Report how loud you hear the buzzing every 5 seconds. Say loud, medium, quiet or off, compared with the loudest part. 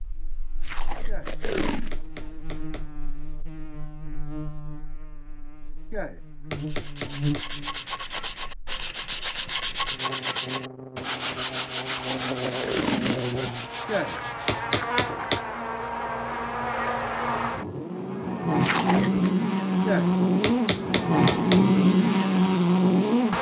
quiet, quiet, quiet, medium, loud.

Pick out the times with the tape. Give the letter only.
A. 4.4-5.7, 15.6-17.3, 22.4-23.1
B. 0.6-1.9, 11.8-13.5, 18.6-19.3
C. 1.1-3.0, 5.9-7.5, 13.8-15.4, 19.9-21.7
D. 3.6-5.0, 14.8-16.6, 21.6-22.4
B.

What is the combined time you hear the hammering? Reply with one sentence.
You can hear the hammering for 7 seconds altogether.